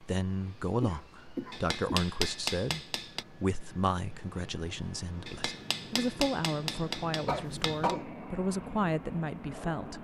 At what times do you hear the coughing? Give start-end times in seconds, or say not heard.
0.8-2.1, 7.2-8.1.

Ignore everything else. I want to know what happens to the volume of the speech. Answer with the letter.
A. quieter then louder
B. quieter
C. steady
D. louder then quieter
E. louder
A.